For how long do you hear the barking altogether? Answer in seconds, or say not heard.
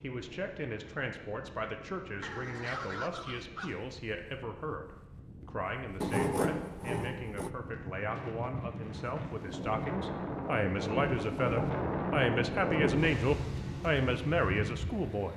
2 s.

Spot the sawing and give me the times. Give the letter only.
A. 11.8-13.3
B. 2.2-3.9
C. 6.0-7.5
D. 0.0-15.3
C.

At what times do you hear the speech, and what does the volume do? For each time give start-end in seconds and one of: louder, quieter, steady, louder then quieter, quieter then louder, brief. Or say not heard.
0.0-15.3 louder.